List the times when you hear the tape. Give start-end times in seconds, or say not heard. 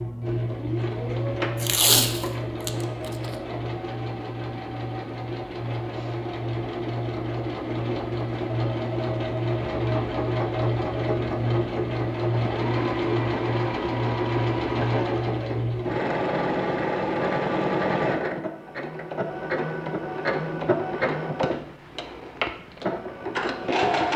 1.6-3.4.